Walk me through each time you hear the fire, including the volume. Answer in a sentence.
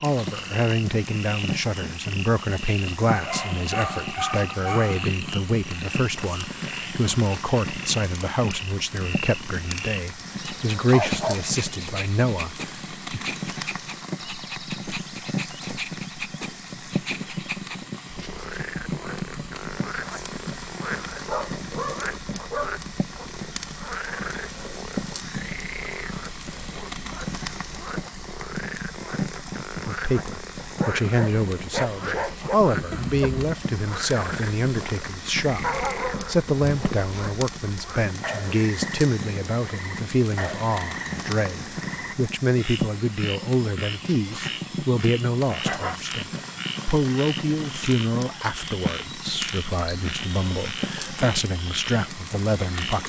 You can hear the fire from 0.0 to 53.0 s, at a steady volume.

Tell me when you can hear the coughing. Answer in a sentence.
You can hear the coughing from 32.9 to 33.5 s.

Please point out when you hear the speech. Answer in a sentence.
You can hear the speech from 0.0 to 13.2 s and from 29.9 to 53.0 s.